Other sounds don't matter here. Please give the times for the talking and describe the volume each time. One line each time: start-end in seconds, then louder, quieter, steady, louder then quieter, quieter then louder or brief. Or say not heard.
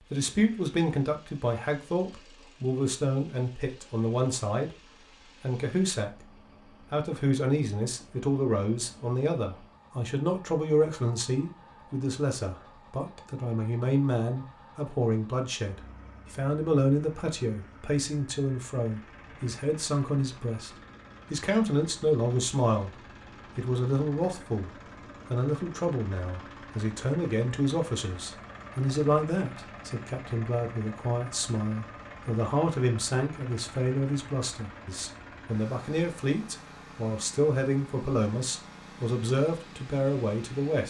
0.1-22.9 steady
23.6-24.7 brief
25.3-40.8 steady.